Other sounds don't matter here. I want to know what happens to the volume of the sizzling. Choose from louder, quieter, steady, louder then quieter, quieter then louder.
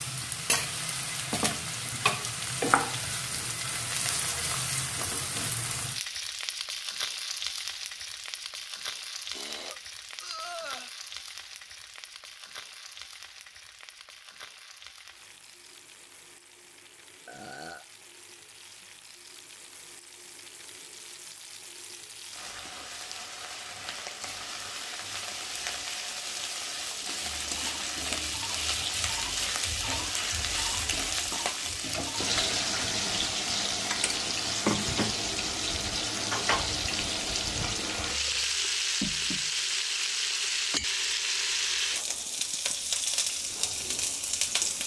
quieter then louder.